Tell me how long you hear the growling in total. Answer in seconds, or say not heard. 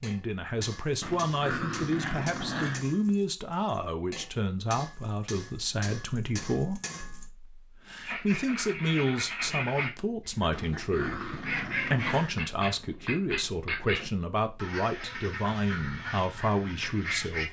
4 s.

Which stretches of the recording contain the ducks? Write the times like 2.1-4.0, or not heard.
8.1-17.4.